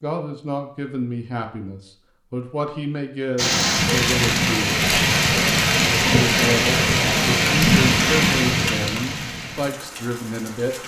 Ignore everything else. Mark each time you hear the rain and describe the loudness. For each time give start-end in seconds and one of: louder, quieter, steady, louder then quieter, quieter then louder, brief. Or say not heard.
3.4-10.8 quieter.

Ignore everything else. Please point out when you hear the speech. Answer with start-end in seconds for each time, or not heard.
0.0-4.8, 6.0-10.8.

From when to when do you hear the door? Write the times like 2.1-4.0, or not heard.
not heard.